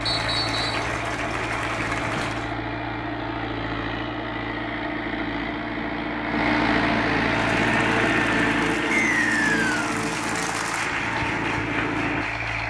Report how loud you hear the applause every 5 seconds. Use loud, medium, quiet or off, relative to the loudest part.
loud, medium, loud.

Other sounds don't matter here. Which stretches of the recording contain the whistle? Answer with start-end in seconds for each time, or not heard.
0.1-0.8, 8.9-9.8.